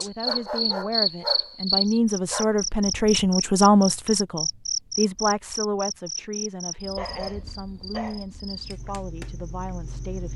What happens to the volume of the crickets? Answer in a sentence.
The volume of the crickets goes down.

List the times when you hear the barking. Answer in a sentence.
The barking can be heard from 0.2 to 2.5 s and from 7.0 to 8.3 s.